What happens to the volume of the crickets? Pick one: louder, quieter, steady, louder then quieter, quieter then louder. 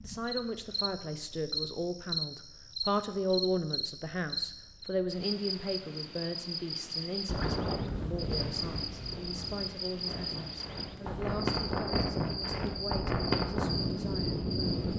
steady.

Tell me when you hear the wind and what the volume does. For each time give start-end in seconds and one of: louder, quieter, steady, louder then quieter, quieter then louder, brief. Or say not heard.
7.2-14.9 quieter then louder.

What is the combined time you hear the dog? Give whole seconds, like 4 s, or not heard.
not heard.